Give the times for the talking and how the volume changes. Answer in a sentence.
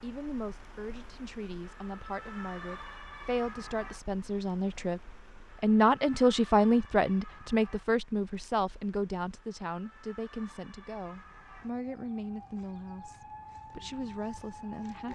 The talking can be heard from 0.0 to 15.1 s, getting louder then quieter.